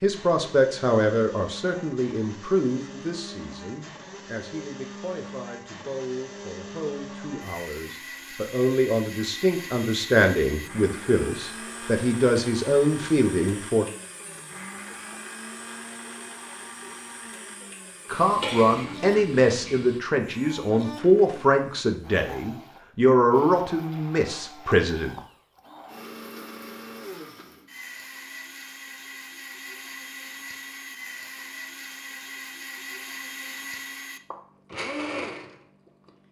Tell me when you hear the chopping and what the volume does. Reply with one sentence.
You can't hear the chopping here.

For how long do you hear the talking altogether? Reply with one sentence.
The talking can be heard for 21 seconds in total.